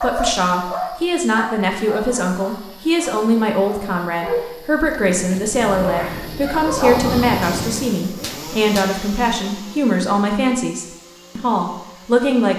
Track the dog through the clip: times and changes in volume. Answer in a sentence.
The dog can be heard from 0.0 to 7.3 s, getting quieter then louder.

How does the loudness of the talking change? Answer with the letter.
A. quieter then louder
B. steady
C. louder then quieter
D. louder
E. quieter
B.